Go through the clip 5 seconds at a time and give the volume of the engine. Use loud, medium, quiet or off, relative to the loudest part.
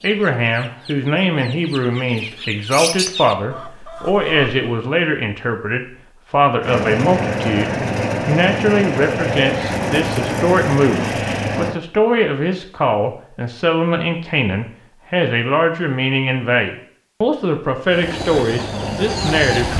off, loud, loud, medium.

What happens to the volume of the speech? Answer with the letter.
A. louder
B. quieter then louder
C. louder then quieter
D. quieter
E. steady
E.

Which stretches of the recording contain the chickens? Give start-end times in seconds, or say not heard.
0.0-4.6, 17.9-19.7.